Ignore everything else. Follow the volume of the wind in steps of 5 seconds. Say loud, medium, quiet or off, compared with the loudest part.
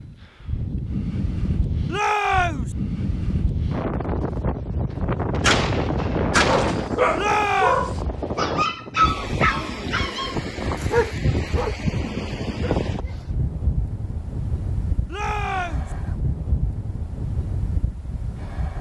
loud, loud, loud, medium.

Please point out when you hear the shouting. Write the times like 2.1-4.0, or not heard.
1.9-2.8, 7.2-7.8, 15.1-15.9.